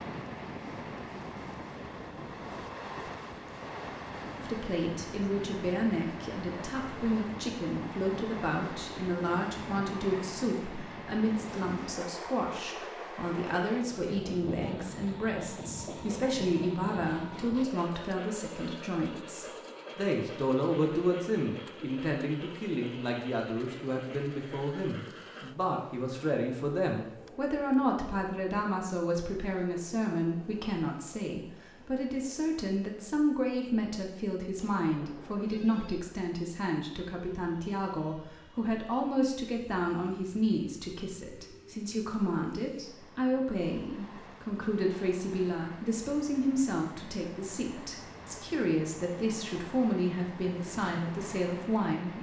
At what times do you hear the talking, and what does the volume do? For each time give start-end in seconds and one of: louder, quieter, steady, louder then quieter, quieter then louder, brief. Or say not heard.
4.4-52.1 steady.